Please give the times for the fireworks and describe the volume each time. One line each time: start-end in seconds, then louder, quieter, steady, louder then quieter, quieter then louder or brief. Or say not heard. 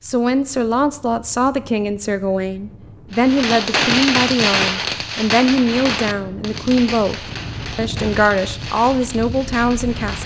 3.1-10.2 quieter.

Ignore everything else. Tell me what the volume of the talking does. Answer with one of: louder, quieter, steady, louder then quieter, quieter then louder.
steady.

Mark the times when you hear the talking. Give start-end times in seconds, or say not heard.
0.0-10.2.